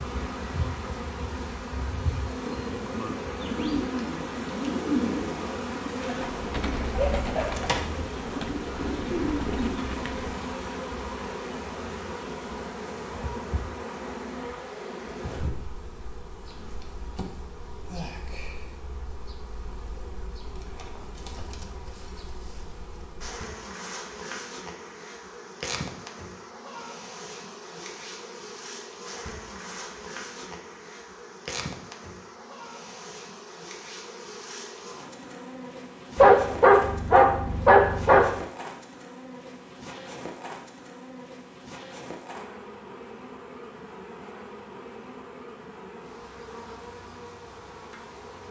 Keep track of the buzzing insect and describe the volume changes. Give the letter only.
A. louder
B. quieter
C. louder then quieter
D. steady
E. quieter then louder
B.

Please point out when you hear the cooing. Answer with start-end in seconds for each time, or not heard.
3.2-10.5.